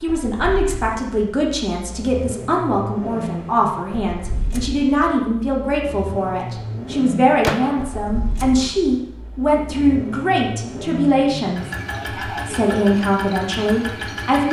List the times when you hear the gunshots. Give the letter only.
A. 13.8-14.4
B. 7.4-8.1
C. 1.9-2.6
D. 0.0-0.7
B.